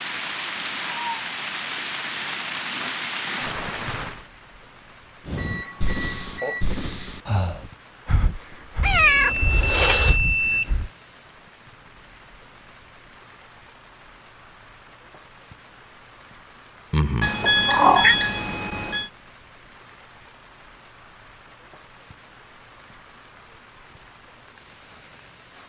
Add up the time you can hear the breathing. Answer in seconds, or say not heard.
6 s.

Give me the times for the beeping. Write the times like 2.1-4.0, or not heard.
5.3-6.7, 9.1-10.8, 17.2-19.1.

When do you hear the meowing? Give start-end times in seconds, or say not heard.
8.8-10.2, 16.9-18.1.